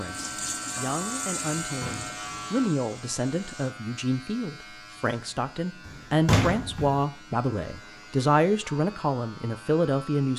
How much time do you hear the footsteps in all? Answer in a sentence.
You can't hear the footsteps here.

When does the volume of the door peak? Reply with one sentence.
The loudest moment of the door is at 6 seconds.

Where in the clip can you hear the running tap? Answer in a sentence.
You can hear the running tap from 0.0 to 3.8 s.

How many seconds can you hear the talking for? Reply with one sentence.
The talking can be heard for 10 seconds in total.